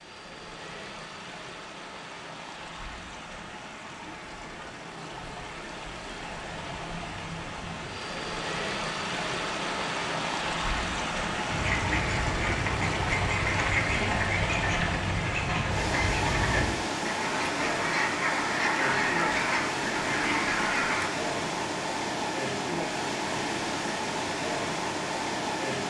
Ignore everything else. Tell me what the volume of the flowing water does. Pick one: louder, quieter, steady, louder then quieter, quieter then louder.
louder.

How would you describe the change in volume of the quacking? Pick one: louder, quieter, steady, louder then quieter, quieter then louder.
steady.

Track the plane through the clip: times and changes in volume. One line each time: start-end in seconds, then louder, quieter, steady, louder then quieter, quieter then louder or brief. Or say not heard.
not heard.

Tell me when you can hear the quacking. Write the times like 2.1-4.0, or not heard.
11.4-21.1.